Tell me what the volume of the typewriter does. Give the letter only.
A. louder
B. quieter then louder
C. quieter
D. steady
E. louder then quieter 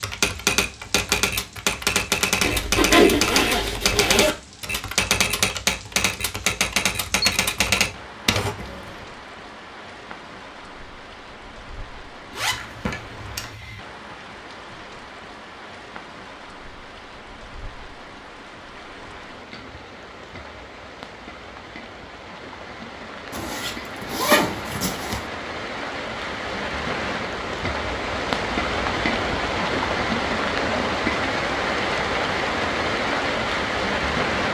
D.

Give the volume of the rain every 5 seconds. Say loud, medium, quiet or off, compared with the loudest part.
quiet, quiet, quiet, quiet, quiet, loud, loud.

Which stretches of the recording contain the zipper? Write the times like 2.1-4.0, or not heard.
2.4-4.3, 12.3-13.8, 23.3-25.2.